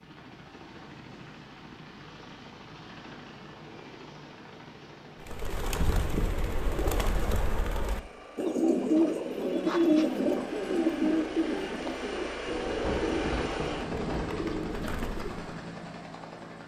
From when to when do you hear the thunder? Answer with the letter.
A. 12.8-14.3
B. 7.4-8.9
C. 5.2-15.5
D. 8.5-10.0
A.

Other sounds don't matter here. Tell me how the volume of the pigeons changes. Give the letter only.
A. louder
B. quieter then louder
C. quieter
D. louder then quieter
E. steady
D.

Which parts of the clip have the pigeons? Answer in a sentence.
You can hear the pigeons from 5.2 to 15.5 s.